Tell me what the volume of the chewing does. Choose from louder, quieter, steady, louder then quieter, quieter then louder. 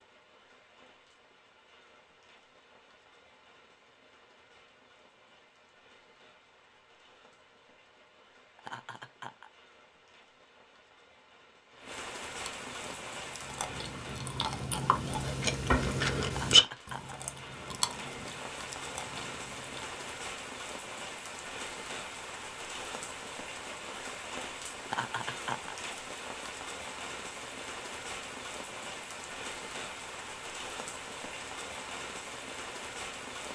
louder then quieter.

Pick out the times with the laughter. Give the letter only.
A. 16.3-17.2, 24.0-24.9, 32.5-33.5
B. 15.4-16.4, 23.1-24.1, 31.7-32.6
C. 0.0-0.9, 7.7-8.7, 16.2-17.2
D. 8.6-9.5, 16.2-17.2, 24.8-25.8
D.